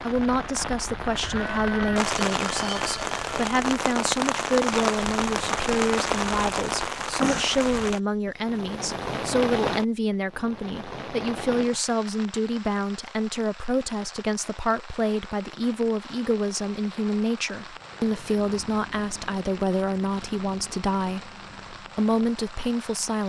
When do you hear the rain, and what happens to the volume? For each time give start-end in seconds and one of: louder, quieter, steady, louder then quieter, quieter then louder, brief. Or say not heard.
0.0-23.2 quieter.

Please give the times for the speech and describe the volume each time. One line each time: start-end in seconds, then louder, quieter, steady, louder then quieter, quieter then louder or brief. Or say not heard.
0.0-23.2 steady.